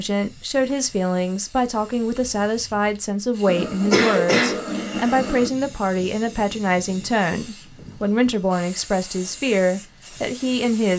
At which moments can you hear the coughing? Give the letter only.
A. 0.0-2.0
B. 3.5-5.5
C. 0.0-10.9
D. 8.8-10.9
B.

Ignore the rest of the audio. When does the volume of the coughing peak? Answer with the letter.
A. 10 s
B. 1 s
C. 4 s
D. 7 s
C.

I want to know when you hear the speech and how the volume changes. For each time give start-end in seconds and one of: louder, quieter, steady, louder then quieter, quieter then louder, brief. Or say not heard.
0.0-10.9 steady.